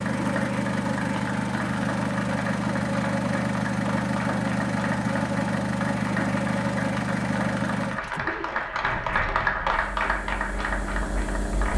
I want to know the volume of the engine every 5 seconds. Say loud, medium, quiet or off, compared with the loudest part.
loud, loud, medium.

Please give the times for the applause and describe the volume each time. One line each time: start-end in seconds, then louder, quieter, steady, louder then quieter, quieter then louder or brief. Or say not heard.
0.0-11.7 louder.